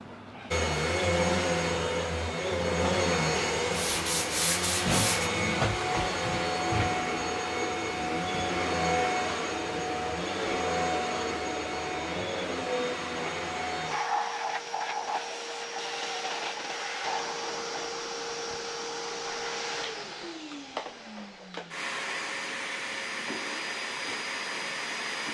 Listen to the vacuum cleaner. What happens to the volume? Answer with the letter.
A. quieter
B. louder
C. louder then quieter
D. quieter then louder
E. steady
A.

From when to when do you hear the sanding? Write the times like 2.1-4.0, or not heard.
3.7-5.3.